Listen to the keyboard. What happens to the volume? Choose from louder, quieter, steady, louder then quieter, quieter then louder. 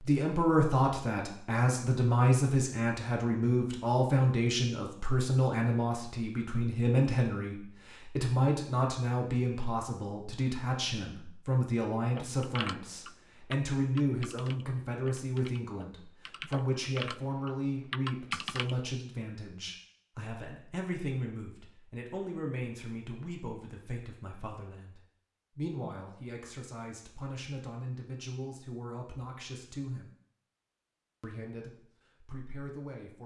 quieter then louder.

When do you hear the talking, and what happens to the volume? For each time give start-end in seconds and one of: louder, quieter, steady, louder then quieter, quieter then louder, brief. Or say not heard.
0.0-30.1 quieter
31.2-33.2 brief.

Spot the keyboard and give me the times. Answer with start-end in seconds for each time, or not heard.
12.2-18.8.